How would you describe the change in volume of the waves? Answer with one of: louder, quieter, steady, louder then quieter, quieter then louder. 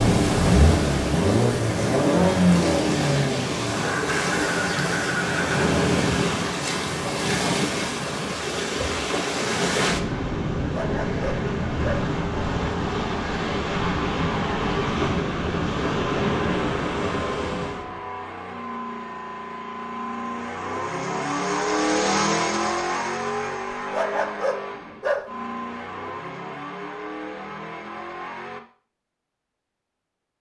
steady.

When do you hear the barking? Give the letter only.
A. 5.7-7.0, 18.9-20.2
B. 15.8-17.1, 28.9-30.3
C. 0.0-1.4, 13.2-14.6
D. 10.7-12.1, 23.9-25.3
D.